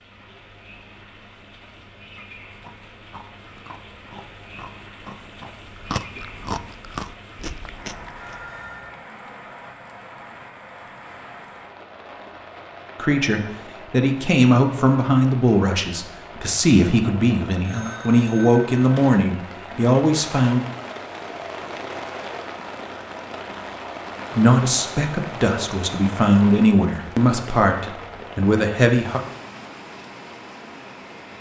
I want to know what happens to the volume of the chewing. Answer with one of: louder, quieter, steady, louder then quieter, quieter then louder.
louder.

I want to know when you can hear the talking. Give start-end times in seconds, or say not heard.
12.9-20.6, 24.3-29.2.